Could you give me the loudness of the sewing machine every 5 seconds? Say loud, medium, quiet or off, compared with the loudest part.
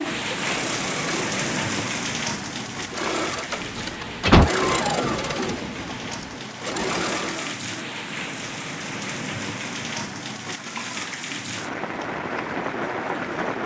loud, loud, off.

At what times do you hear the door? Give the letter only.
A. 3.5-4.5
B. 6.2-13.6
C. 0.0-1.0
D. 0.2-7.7
A.